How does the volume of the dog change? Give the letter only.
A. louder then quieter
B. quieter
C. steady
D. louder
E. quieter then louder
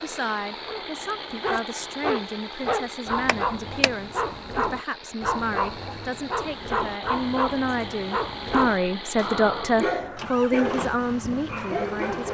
C.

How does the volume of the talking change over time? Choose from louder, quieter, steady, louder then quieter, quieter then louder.
louder.